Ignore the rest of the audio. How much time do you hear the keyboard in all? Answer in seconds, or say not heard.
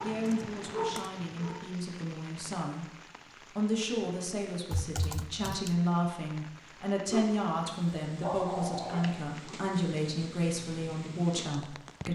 3 s.